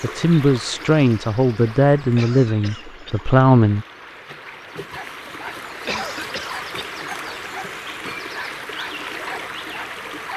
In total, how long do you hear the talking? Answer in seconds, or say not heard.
4 s.